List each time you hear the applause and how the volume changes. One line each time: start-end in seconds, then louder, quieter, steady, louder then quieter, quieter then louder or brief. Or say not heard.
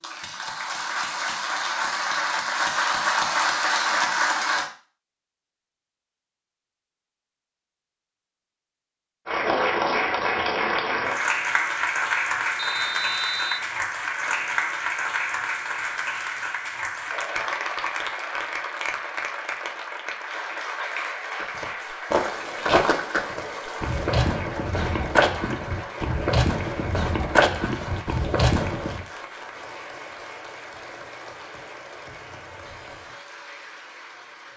0.0-4.7 louder
9.2-34.5 quieter.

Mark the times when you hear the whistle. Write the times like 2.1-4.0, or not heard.
12.6-13.7.